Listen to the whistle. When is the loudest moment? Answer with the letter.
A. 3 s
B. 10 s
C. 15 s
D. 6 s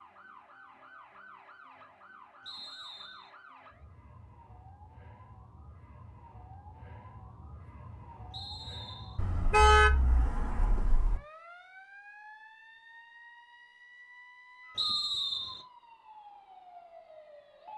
C.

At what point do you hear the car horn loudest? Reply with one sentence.
The volume of the car horn peaks at 10 seconds.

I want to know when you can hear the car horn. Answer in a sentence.
You can hear the car horn from 9.2 to 11.2 s.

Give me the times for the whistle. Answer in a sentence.
You can hear the whistle from 2.5 to 3.3 s, from 8.3 to 9.2 s and from 14.8 to 15.7 s.